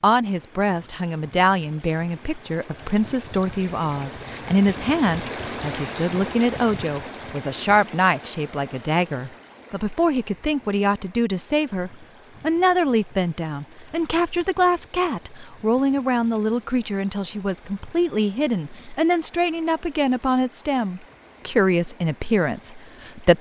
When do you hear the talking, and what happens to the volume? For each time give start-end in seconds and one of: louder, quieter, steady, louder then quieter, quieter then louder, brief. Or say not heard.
0.0-23.3 steady.